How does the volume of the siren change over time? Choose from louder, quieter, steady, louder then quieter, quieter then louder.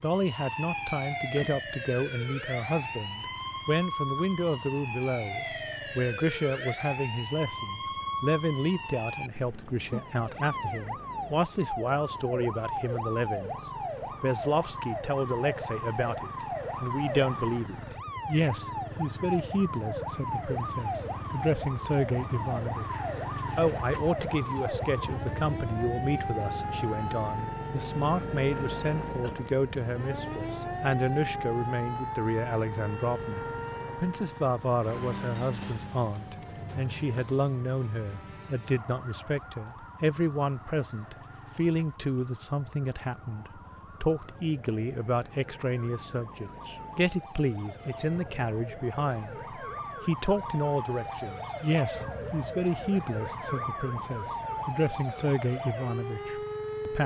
quieter then louder.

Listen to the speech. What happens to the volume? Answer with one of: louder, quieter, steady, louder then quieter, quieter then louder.
steady.